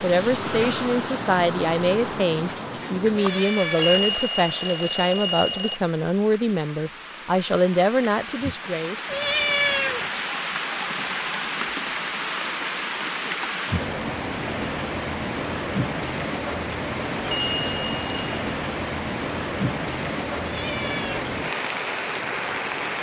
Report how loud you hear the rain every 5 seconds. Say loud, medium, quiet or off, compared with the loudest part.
loud, medium, loud, loud, loud.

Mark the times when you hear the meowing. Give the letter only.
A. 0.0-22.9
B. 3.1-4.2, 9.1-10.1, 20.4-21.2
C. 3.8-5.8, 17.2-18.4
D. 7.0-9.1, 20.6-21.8
B.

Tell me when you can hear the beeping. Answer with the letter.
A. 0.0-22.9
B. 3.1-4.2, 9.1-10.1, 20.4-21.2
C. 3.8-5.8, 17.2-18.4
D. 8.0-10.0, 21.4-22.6
C.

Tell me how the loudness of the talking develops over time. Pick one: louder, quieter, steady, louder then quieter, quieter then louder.
steady.